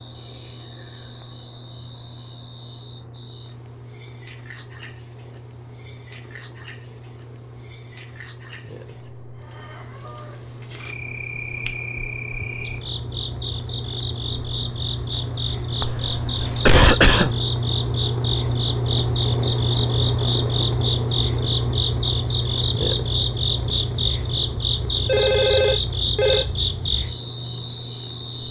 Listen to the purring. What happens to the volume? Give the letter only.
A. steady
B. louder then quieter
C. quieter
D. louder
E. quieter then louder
B.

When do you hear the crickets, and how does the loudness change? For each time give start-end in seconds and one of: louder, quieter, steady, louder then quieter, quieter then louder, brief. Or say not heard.
0.0-28.4 louder.